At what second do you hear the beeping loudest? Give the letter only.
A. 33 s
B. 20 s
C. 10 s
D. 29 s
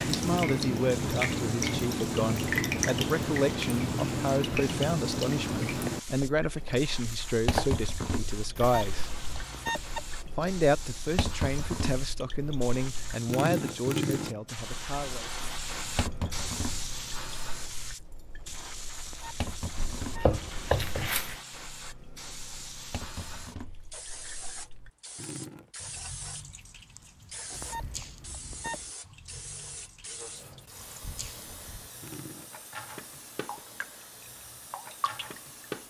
C.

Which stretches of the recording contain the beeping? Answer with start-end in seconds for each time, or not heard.
8.6-10.2, 19.1-20.3, 27.5-28.9.